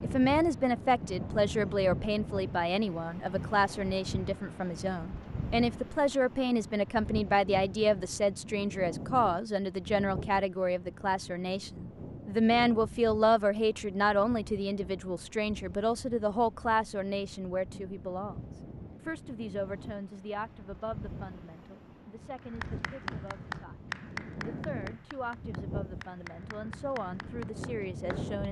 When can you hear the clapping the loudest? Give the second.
24 s.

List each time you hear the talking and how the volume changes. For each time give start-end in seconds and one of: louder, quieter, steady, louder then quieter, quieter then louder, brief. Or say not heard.
0.0-28.4 quieter.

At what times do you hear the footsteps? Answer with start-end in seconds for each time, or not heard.
not heard.